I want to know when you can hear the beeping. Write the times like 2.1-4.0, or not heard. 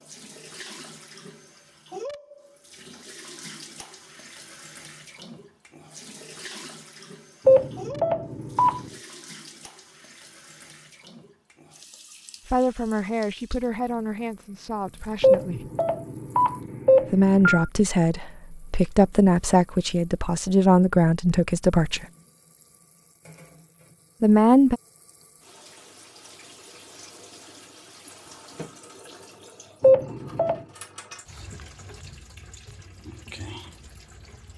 7.5-8.8, 15.2-17.6, 29.8-30.6.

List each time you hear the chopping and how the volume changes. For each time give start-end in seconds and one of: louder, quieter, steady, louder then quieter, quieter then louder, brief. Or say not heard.
not heard.